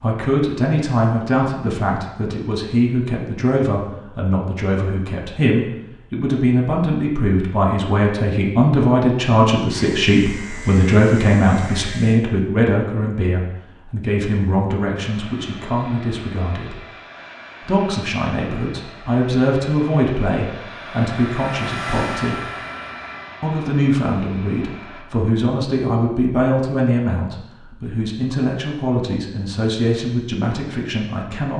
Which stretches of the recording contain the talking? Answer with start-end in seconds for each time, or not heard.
0.0-16.8, 17.6-22.4, 23.4-31.5.